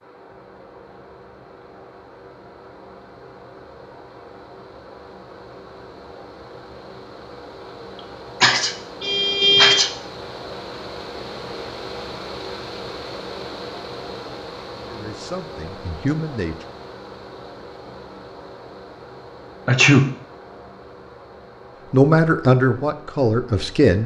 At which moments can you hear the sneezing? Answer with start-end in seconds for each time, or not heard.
8.4-9.9, 19.6-20.1.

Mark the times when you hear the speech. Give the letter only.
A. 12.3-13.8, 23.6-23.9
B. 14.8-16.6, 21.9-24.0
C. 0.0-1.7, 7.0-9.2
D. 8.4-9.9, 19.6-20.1
B.